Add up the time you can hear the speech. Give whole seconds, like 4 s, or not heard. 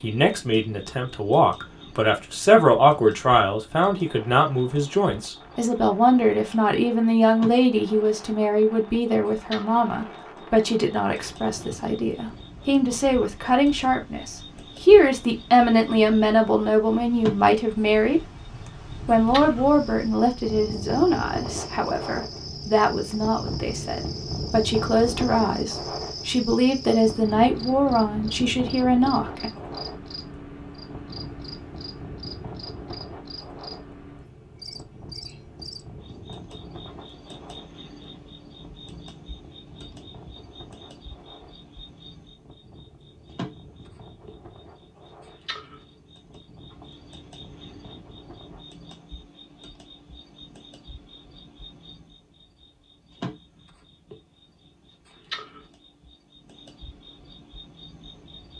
29 s.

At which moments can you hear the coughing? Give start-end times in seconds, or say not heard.
not heard.